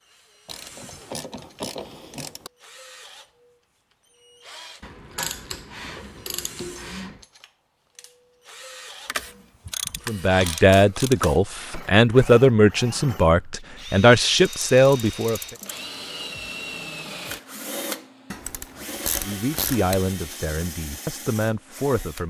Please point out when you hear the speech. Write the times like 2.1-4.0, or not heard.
10.1-15.4, 19.2-22.2.